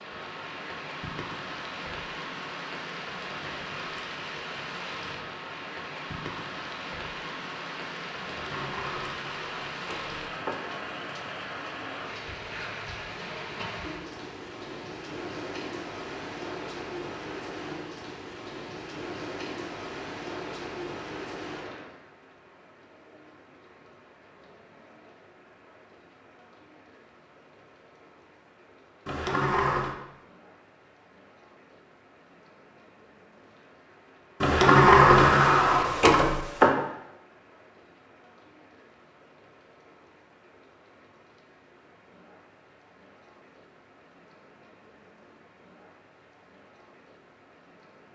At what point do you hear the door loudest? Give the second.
35 s.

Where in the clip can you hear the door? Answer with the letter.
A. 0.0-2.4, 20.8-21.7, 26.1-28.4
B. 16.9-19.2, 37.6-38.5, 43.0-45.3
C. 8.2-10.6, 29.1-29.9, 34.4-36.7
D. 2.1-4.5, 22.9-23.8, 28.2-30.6
C.